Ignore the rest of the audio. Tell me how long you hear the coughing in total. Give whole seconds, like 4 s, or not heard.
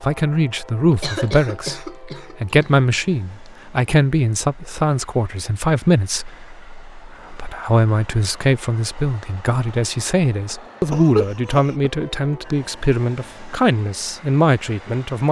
3 s.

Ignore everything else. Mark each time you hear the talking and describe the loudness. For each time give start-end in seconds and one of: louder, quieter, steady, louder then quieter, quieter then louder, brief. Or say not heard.
0.0-15.2 steady.